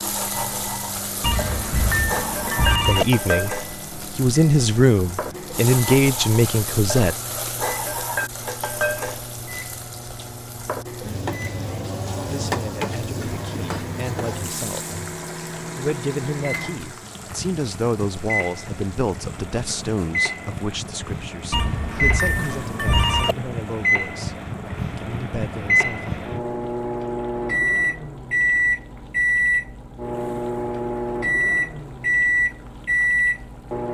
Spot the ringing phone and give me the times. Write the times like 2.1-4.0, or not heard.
1.2-3.0, 21.5-23.4.